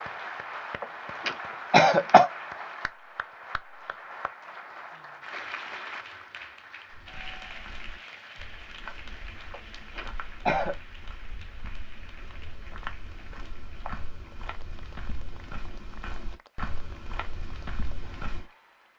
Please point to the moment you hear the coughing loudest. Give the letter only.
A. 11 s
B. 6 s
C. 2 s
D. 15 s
C.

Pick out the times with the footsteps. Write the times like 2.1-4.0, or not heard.
6.9-18.4.